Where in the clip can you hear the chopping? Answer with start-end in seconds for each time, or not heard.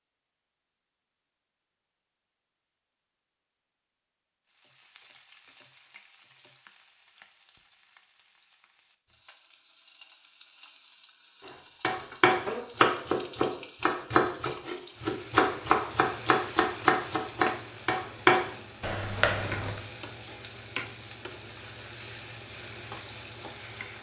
11.4-19.8.